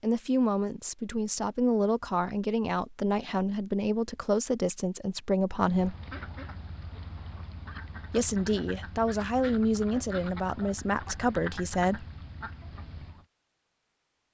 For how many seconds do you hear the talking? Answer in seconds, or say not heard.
10 s.